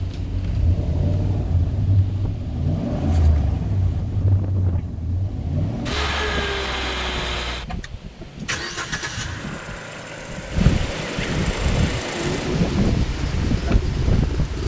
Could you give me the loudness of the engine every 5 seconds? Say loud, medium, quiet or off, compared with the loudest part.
loud, loud, medium.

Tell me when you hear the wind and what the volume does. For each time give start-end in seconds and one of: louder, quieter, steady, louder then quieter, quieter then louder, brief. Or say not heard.
0.0-14.6 louder.